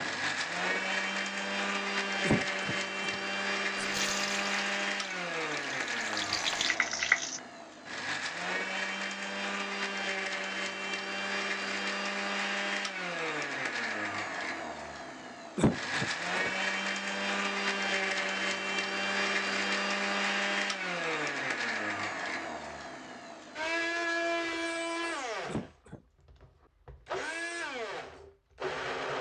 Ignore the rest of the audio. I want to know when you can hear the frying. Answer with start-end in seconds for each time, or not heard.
3.8-7.4.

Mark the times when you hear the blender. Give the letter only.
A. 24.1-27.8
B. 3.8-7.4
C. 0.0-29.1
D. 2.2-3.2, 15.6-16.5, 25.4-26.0
C.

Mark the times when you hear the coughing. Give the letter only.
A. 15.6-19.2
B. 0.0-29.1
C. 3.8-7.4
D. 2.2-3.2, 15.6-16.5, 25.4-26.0
D.